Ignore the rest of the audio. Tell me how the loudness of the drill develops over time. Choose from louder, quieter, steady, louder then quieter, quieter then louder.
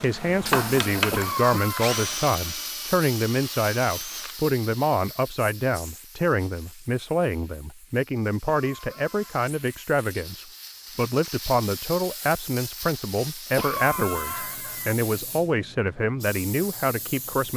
quieter.